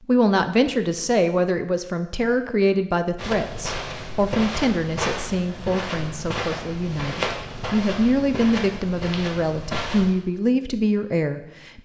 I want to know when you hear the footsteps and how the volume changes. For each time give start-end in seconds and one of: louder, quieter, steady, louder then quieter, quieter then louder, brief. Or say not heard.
3.1-10.1 steady.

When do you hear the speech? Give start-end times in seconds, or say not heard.
0.1-11.8.